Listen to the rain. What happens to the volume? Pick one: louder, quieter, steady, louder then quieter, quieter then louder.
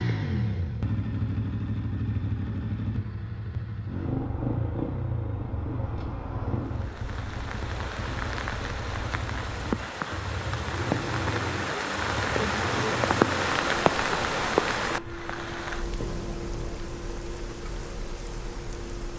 louder then quieter.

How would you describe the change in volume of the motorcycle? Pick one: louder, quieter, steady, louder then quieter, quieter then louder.
quieter.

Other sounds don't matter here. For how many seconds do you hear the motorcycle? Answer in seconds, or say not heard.
19 s.